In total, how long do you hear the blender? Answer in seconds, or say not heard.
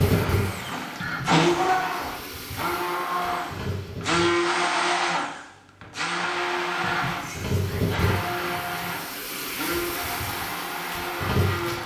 12 s.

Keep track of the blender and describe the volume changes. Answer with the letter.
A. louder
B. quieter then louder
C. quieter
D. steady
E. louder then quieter
C.